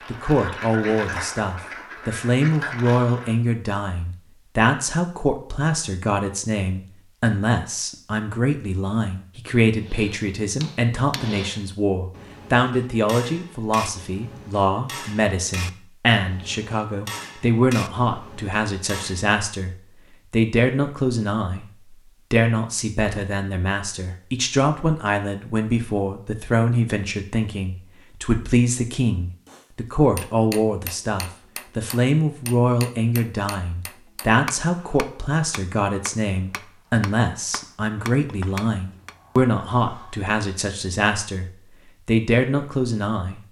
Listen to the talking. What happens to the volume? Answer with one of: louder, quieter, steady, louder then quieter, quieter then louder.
steady.